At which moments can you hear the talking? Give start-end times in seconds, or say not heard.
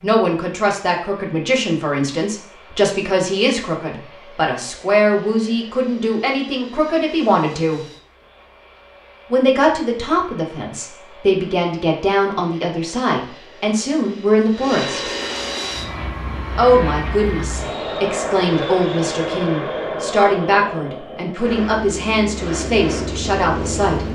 0.0-7.8, 9.3-15.1, 16.6-24.0.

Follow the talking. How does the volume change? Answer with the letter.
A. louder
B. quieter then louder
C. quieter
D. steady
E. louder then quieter
D.